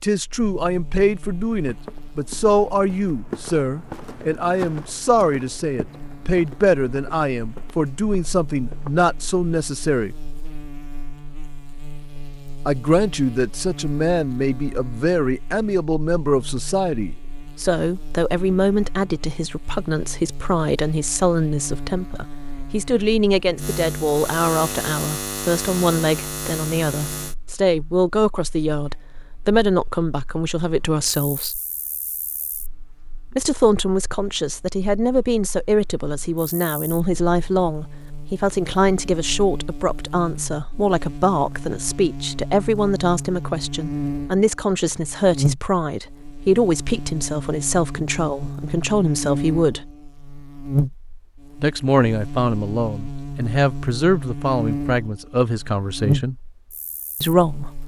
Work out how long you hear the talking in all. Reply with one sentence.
The talking can be heard for 51 seconds in total.